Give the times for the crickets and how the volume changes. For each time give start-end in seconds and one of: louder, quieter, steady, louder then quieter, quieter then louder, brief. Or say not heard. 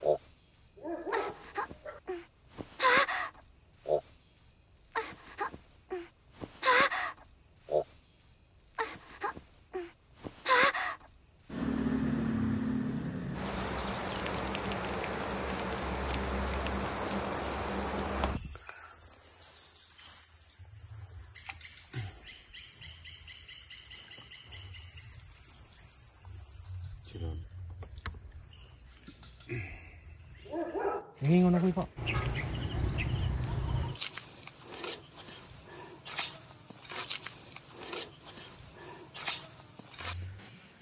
0.0-40.7 steady.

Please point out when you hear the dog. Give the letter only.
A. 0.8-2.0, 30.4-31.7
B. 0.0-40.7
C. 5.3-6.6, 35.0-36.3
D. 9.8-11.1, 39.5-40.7
A.